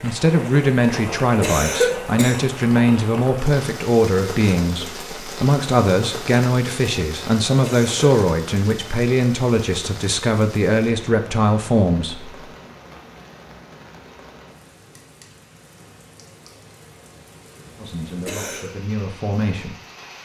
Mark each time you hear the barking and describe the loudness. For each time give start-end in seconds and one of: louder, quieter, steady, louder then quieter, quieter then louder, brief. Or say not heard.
not heard.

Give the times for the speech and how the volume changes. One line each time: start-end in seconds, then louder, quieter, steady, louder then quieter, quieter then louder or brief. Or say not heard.
0.0-12.4 steady
17.8-19.8 brief.